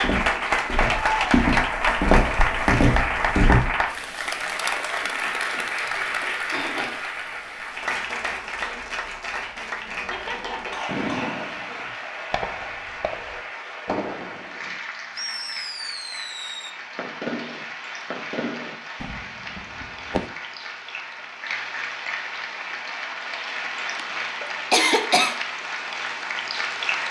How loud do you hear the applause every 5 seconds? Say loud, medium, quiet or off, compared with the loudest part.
loud, medium, medium, quiet, medium, medium.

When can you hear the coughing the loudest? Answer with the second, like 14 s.
25 s.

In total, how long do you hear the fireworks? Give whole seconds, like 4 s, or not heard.
10 s.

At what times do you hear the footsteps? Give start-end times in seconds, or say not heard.
0.0-3.7.